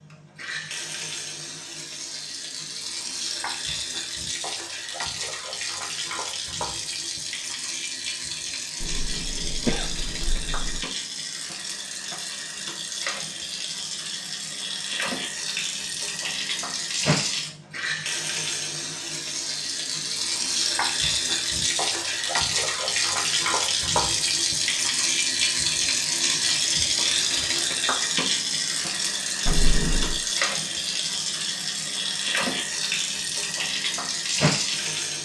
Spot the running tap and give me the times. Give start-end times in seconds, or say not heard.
0.0-35.2.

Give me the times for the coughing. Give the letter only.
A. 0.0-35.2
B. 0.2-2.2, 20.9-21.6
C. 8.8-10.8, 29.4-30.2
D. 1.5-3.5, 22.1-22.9
C.